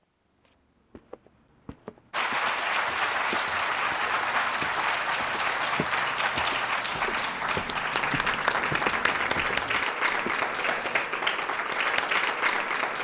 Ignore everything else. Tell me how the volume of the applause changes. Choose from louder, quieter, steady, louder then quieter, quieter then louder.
steady.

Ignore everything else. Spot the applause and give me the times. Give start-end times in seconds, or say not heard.
2.1-13.0.